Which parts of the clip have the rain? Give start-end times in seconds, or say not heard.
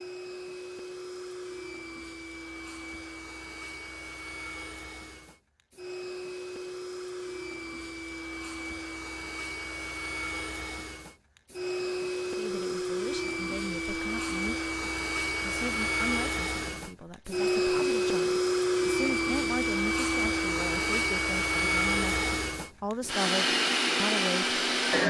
not heard.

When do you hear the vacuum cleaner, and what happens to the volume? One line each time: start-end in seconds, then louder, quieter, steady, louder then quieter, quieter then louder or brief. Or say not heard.
0.0-25.0 louder.